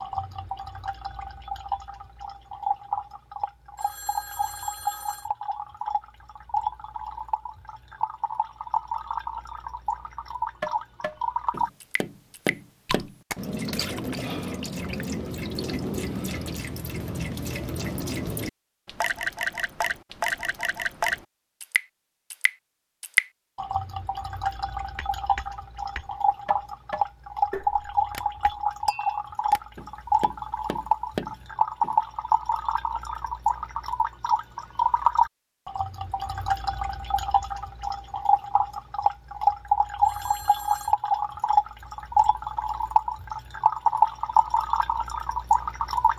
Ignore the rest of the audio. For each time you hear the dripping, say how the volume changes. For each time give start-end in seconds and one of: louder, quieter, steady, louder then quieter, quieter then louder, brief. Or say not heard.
0.0-46.1 louder.